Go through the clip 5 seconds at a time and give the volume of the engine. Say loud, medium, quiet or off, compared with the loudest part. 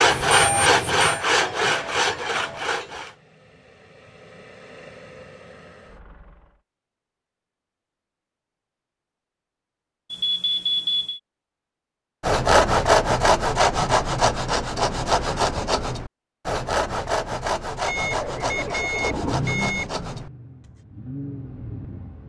quiet, quiet, off, loud, medium.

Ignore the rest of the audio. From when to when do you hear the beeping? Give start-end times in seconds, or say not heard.
0.1-1.2, 10.1-11.2, 17.9-19.9.